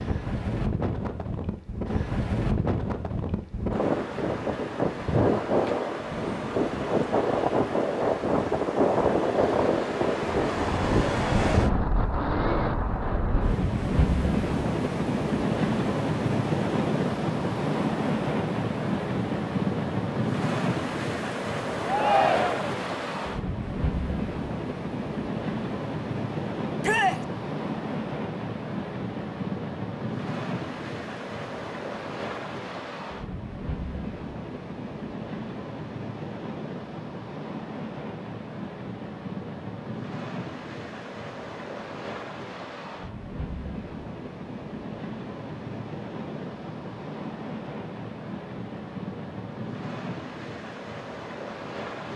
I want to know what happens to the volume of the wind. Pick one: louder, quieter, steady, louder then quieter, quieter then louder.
quieter.